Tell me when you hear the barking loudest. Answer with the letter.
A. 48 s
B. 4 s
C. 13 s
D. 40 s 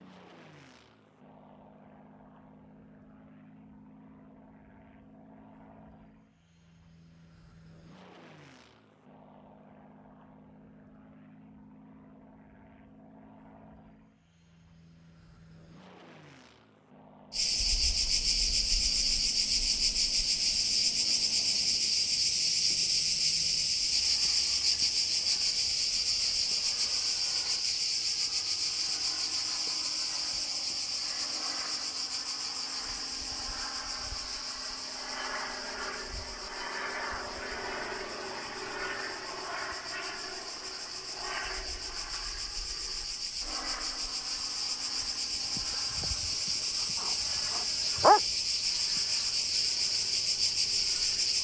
A.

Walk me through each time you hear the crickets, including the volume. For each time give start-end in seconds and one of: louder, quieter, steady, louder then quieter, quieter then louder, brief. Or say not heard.
17.3-51.3 quieter then louder.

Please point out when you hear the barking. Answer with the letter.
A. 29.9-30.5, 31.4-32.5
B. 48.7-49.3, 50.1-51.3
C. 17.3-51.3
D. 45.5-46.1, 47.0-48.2
D.